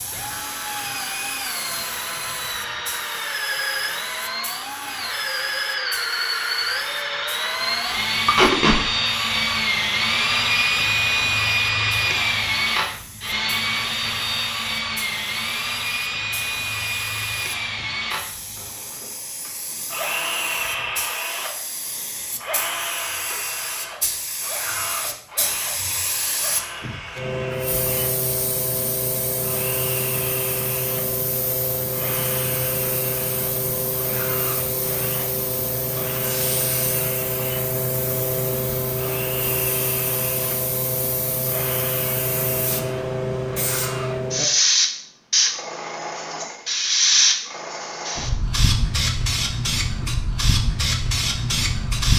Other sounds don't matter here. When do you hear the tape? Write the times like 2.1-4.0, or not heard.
8.2-8.8.